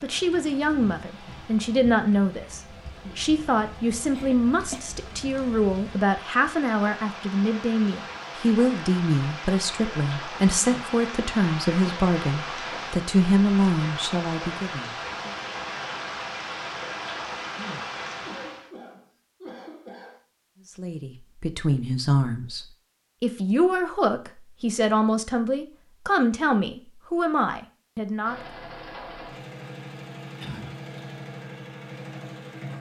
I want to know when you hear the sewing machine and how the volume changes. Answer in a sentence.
You can hear the sewing machine from 28.2 to 32.7 s, at a steady volume.